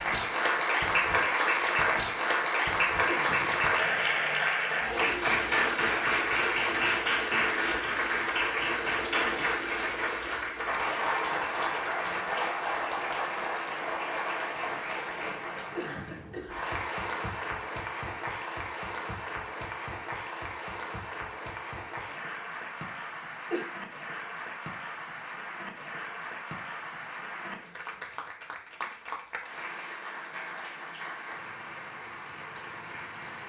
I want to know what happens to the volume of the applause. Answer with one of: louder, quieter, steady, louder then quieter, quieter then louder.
quieter.